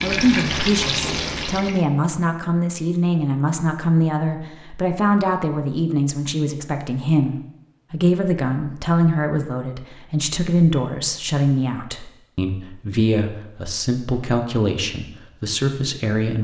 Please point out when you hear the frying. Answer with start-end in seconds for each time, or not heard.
0.0-1.9.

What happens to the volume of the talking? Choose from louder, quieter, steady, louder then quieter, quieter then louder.
steady.